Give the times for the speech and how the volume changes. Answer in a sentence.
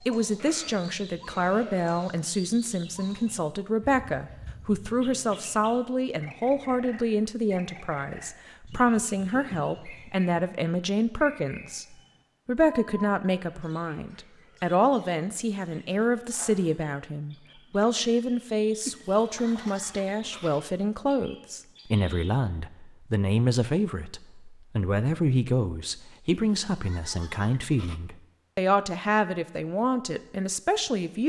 You can hear the speech from 0.0 to 31.2 s, at a steady volume.